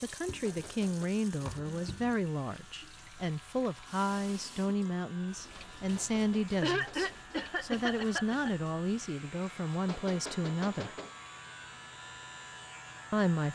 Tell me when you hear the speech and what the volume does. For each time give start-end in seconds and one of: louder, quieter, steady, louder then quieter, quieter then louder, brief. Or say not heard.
0.0-10.9 steady
13.1-13.5 brief.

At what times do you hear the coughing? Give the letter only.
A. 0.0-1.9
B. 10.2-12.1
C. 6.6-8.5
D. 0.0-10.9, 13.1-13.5
C.